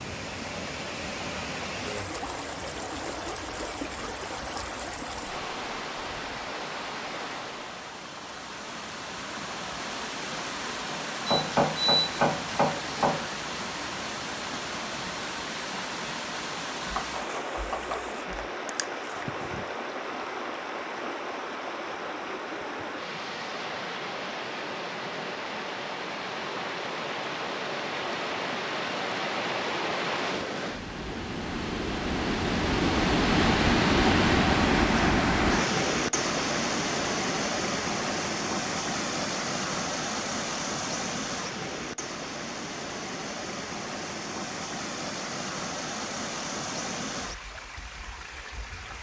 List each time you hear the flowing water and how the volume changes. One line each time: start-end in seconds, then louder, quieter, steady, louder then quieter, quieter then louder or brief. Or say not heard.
0.0-48.9 louder then quieter.